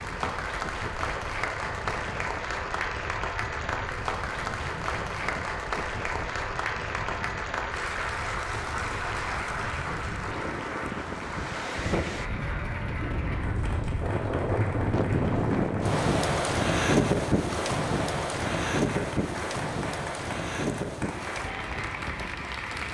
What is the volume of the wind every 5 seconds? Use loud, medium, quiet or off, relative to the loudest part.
quiet, quiet, medium, loud, medium.